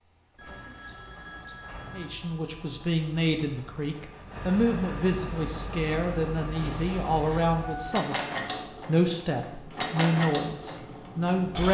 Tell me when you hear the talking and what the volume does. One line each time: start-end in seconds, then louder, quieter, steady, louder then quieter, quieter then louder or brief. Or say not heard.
1.9-11.6 steady.